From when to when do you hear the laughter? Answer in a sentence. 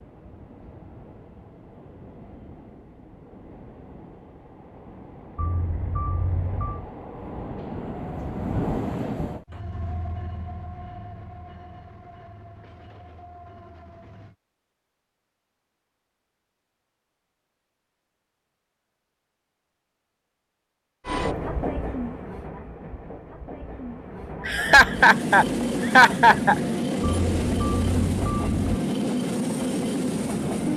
You can hear the laughter from 24.4 to 26.6 s.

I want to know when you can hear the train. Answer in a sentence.
You can hear the train from 0.0 to 14.3 s and from 21.1 to 30.7 s.